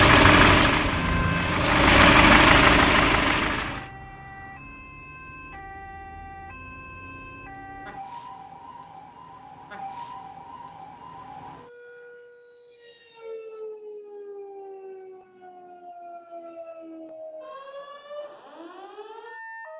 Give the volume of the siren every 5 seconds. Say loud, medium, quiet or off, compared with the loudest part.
loud, medium, medium, medium.